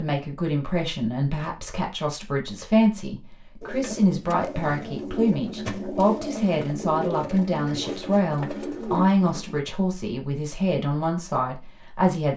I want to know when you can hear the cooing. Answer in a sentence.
You can hear the cooing from 3.6 to 9.6 s.